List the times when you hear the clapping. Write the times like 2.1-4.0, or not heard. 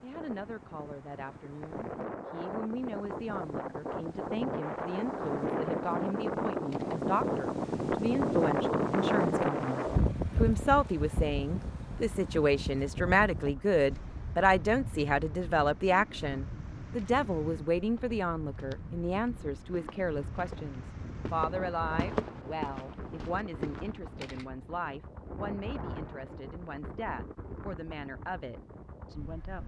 not heard.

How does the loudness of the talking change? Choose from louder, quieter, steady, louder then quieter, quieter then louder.
louder then quieter.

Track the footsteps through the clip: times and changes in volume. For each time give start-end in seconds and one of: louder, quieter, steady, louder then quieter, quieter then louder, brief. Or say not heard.
17.9-24.3 louder then quieter.